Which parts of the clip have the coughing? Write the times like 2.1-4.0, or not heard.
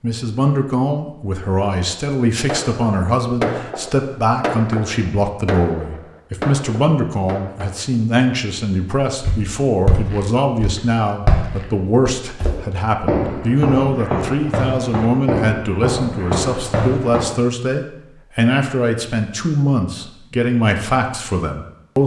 not heard.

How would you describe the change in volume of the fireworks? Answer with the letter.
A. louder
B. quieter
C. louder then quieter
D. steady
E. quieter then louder
B.